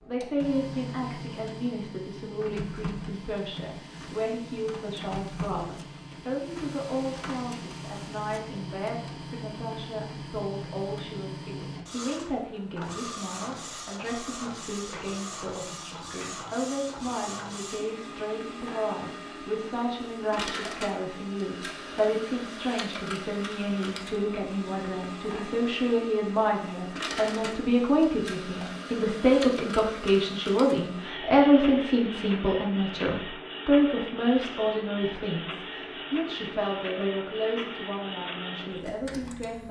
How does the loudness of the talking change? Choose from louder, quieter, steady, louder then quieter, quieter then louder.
louder.